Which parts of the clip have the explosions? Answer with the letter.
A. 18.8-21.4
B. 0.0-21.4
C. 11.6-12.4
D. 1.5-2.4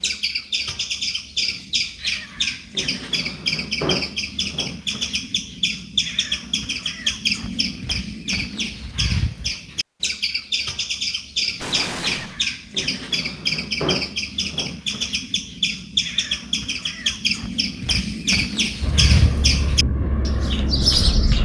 C.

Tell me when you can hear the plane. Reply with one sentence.
The plane can be heard from 18.8 to 21.4 s.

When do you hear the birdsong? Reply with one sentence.
You can hear the birdsong from 0.0 to 21.4 s.